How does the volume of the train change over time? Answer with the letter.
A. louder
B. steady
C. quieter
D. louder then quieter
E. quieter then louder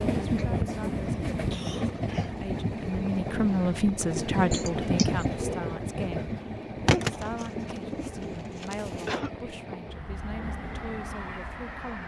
C.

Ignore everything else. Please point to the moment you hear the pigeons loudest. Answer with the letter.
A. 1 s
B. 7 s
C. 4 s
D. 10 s
B.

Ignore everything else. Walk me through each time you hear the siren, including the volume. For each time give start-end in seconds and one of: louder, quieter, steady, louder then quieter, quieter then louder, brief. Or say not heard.
not heard.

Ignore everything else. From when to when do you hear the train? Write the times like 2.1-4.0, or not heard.
0.0-12.0.